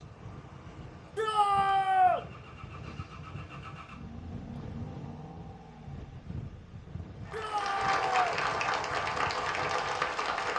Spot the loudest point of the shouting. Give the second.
2 s.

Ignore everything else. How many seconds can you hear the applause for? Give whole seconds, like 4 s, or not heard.
3 s.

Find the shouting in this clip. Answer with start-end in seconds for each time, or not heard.
1.1-2.2, 7.3-8.3.